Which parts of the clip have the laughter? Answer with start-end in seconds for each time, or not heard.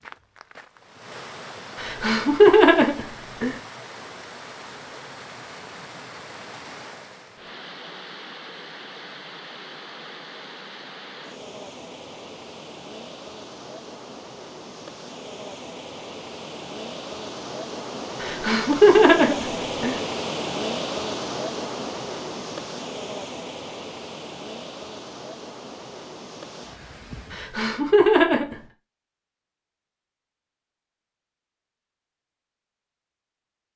1.8-3.5, 18.2-20.0, 27.3-28.6.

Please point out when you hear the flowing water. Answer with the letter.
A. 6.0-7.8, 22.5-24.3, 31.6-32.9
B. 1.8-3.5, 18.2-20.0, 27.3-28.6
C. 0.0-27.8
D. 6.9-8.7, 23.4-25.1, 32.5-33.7
C.